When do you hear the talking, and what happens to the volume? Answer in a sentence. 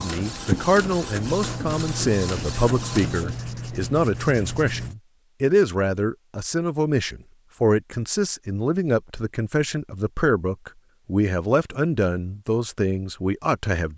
You can hear the talking from 0.0 to 13.9 s, at a steady volume.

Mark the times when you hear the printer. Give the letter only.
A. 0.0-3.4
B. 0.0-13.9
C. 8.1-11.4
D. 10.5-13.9
A.